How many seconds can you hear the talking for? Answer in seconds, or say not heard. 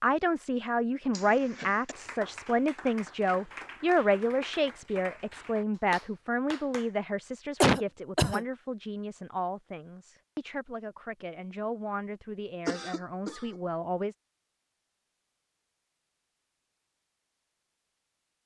14 s.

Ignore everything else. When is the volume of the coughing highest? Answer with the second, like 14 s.
8 s.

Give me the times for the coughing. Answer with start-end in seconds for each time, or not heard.
1.1-1.9, 7.6-8.4, 12.7-13.6.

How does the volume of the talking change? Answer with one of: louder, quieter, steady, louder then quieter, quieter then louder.
quieter.